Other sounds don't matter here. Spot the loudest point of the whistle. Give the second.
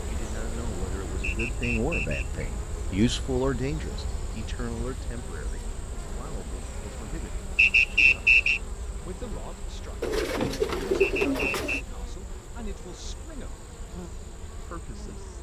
8 s.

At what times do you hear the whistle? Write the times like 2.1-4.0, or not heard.
1.2-2.5, 7.5-8.6, 11.0-11.8.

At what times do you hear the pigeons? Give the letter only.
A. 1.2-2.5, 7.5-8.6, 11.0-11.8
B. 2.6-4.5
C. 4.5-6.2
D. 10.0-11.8
D.